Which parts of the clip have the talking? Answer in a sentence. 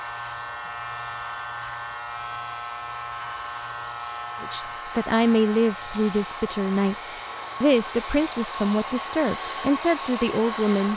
The talking can be heard from 4.4 to 10.9 s.